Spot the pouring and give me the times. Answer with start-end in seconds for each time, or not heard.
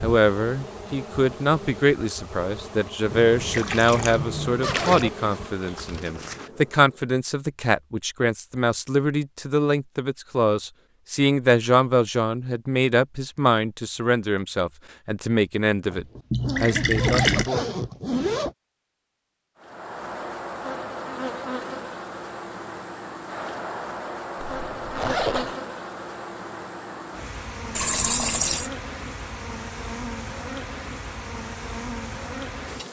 3.1-5.1, 16.3-17.5, 27.8-28.7.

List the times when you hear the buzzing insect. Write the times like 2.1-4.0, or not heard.
0.0-7.2, 19.6-32.8.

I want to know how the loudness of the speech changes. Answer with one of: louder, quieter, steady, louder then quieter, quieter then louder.
steady.